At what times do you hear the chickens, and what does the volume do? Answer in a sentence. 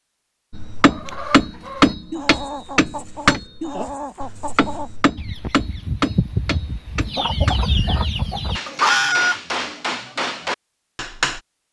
The chickens can be heard from 0.8 to 9.4 s, getting louder.